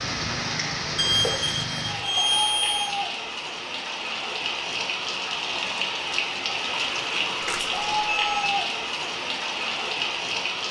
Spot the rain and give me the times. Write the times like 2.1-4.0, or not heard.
0.0-10.6.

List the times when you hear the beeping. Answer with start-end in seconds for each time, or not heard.
0.9-2.9, 7.4-8.5.